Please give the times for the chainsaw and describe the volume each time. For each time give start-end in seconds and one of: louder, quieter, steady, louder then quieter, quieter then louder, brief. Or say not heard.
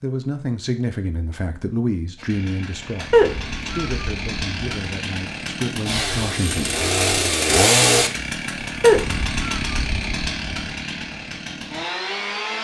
2.1-12.5 louder then quieter.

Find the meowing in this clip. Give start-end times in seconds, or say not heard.
3.1-4.0, 8.8-9.6.